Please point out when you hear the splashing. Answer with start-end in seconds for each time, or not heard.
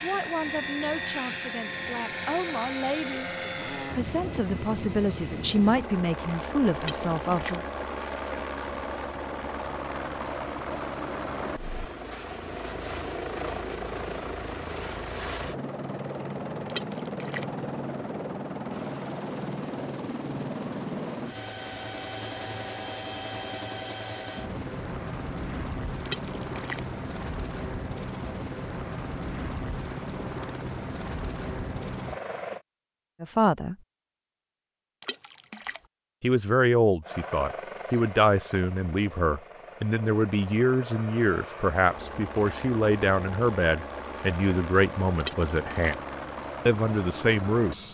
6.8-7.6, 16.6-17.4, 26.1-26.9, 35.0-35.8, 45.2-46.0.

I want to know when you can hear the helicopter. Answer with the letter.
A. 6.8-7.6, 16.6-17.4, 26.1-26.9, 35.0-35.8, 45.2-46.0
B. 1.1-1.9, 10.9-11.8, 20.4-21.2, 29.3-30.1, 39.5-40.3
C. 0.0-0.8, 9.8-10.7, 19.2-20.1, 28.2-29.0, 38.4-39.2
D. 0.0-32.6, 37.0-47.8
D.